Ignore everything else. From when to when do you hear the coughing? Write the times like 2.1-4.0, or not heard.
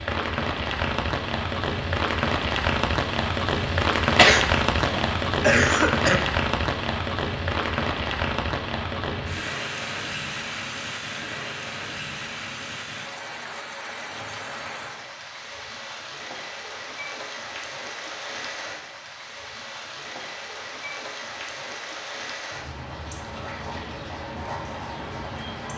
4.2-6.2.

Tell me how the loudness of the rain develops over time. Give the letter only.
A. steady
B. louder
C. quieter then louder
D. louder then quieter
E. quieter
E.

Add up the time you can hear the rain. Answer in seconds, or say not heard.
26 s.